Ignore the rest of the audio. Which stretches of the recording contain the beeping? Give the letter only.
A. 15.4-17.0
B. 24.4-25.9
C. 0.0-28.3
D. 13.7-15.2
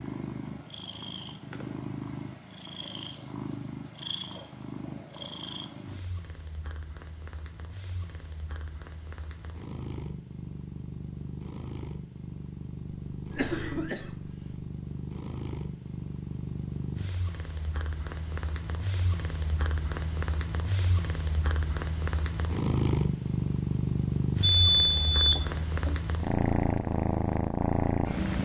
B.